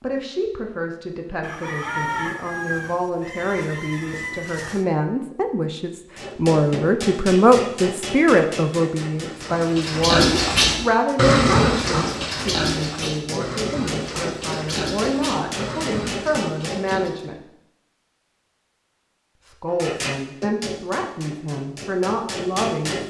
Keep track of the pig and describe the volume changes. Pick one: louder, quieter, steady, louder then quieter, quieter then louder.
quieter.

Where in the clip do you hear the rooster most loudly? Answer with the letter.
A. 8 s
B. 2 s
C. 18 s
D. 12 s
B.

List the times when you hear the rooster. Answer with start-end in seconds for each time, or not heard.
1.4-4.8.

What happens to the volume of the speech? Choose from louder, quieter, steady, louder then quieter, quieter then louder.
louder then quieter.